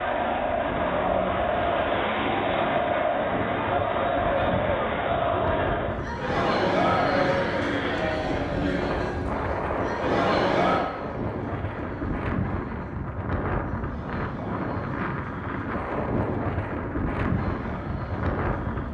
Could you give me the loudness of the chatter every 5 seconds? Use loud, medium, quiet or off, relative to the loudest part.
loud, loud, medium, quiet.